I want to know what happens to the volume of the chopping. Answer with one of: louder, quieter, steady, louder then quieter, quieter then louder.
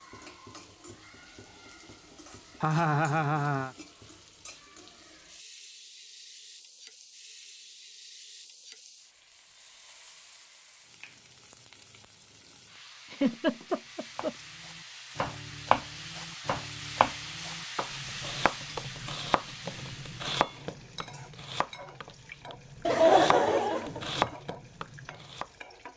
quieter then louder.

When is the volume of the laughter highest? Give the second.
23 s.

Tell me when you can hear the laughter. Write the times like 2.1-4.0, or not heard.
2.6-3.7, 13.1-14.3, 22.9-24.4.